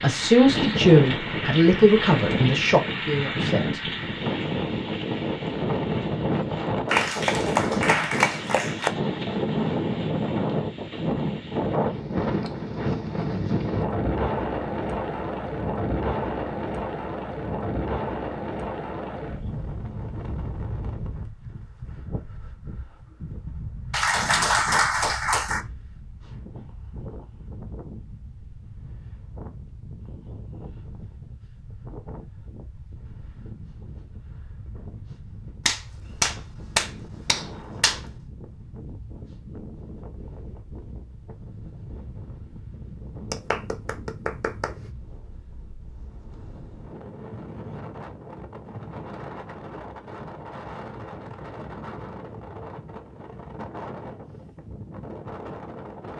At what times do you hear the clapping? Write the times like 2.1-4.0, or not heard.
6.8-8.9, 23.9-25.6, 35.6-38.0, 43.3-44.9.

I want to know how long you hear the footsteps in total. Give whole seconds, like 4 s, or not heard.
not heard.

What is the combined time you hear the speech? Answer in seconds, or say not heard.
4 s.